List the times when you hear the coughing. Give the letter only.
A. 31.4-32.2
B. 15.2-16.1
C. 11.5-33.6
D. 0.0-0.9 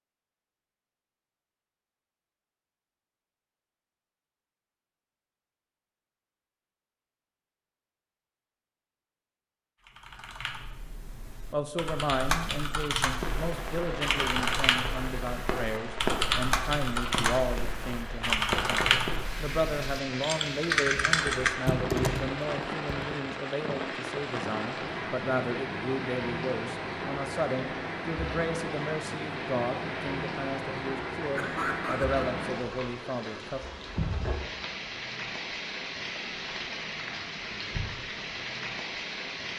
A.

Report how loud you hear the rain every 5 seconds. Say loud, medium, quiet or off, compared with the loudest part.
off, off, loud, loud, loud, loud, loud, loud.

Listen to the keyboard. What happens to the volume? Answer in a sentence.
The volume of the keyboard goes up.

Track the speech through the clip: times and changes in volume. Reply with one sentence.
You can hear the speech from 11.5 to 33.6 s, at a steady volume.